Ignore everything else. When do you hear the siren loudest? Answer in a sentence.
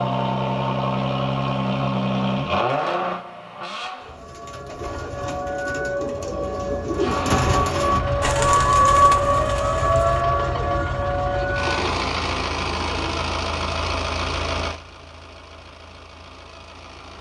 The loudest moment of the siren is at 9 seconds.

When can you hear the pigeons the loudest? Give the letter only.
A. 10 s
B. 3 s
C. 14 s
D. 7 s
D.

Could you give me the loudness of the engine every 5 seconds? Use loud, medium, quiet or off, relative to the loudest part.
loud, medium, loud, quiet.